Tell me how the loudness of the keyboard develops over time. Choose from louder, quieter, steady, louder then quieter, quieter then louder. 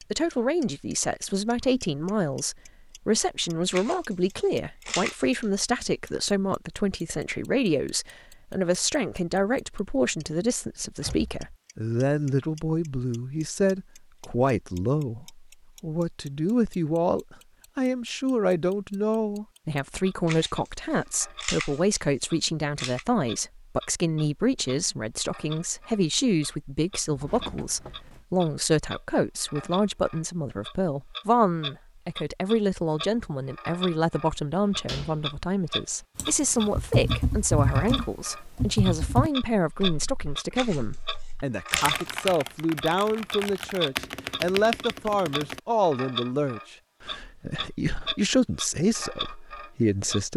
quieter then louder.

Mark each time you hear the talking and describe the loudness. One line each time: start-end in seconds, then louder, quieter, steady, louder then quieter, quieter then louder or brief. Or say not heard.
0.1-50.3 steady.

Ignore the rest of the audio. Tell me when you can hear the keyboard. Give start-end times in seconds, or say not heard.
36.1-45.6.